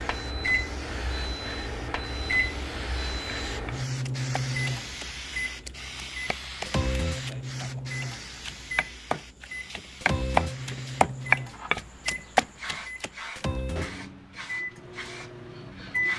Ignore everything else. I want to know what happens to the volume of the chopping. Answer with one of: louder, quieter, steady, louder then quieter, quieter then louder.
louder.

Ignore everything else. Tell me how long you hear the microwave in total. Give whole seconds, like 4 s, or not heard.
16 s.